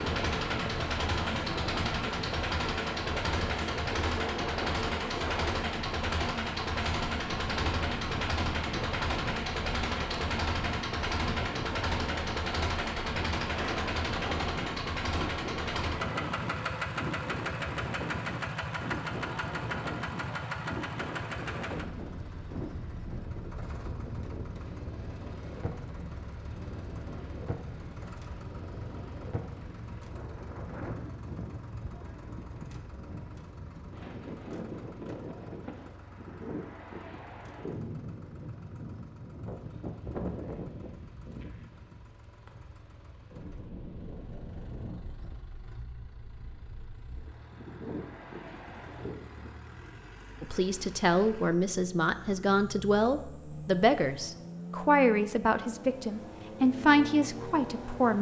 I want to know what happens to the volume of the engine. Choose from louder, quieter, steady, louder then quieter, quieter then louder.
quieter then louder.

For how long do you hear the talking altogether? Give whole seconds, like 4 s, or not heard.
8 s.